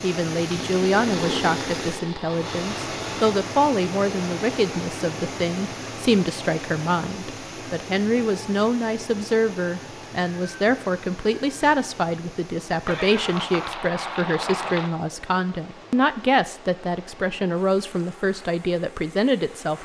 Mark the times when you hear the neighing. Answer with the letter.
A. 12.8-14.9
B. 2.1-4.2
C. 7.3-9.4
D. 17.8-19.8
A.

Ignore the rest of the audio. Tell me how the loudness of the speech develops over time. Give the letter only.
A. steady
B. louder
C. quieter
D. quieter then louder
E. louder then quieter
A.